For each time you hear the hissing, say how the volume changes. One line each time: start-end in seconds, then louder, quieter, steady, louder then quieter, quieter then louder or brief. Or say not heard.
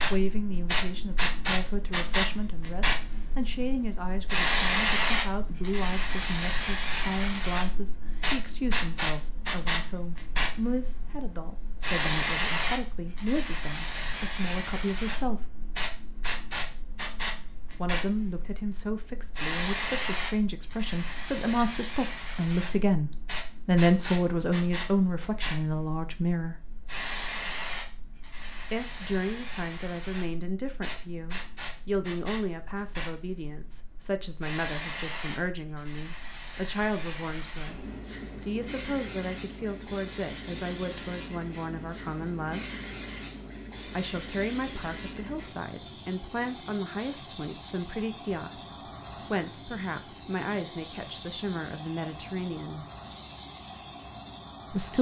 0.0-54.9 quieter.